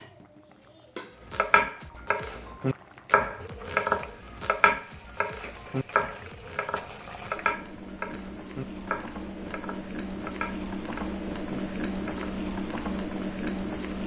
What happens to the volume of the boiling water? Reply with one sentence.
The volume of the boiling water goes up.